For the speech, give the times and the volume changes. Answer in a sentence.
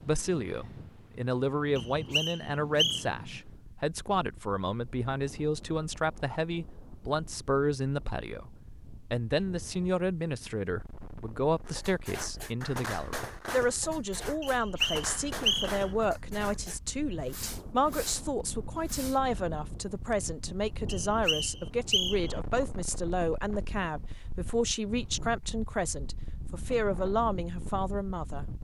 You can hear the speech from 0.0 to 28.4 s, at a steady volume.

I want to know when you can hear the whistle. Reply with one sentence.
The whistle can be heard from 1.8 to 3.0 s, from 14.4 to 15.8 s and from 20.9 to 22.4 s.